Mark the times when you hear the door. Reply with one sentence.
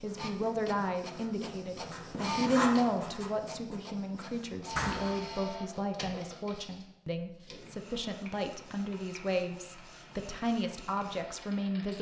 You can hear the door from 4.7 to 5.3 s.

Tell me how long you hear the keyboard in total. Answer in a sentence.
You can't hear the keyboard here.